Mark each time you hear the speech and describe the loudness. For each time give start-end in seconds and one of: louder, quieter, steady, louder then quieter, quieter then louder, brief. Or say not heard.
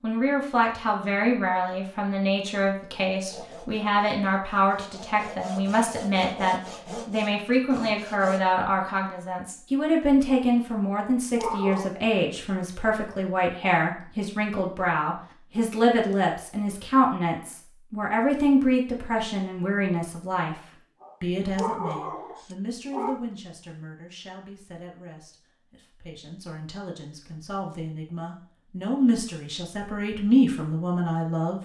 0.0-20.6 steady
21.2-31.5 quieter then louder.